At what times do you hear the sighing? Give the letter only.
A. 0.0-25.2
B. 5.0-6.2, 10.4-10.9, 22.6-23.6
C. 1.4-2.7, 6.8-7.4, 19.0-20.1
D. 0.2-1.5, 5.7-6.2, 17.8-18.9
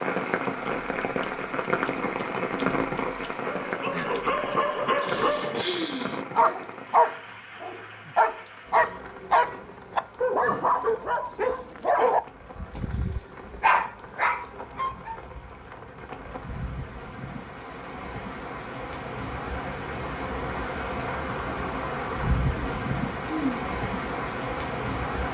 B.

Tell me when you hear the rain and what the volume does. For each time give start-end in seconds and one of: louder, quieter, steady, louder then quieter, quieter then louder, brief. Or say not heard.
0.0-25.2 quieter then louder.